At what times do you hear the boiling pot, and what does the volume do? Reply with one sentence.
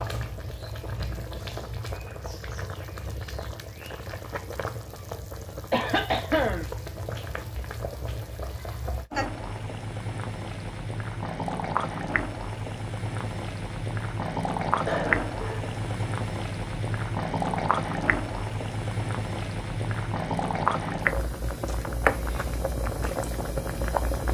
You can hear the boiling pot from 0.0 to 24.2 s, getting louder.